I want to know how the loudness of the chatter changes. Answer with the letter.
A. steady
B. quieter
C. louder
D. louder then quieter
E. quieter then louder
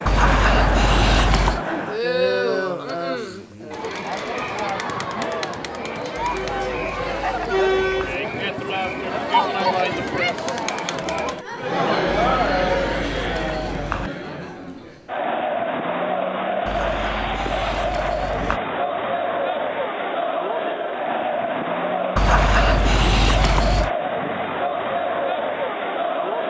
A.